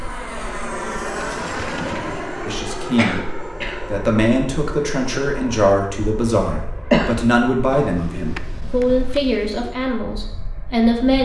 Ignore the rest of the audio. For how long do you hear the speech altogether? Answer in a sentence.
The speech can be heard for 8 seconds in total.